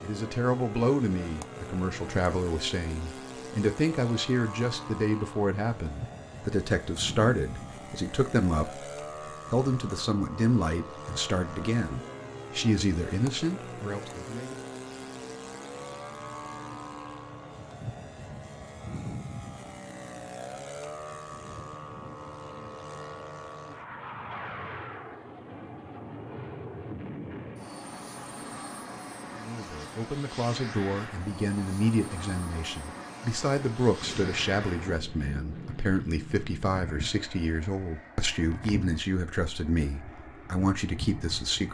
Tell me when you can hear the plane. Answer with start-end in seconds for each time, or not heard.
0.0-41.6.